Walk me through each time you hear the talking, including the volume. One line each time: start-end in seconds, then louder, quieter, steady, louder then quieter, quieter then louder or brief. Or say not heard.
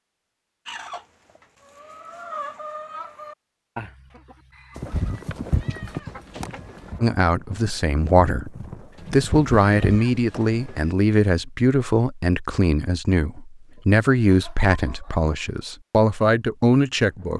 7.0-17.3 steady.